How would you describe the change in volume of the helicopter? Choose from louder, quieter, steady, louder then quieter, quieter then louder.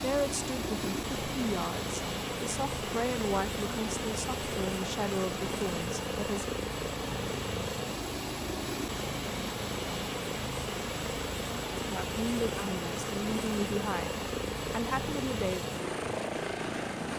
steady.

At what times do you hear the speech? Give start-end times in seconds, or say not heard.
0.0-6.5, 11.9-15.7.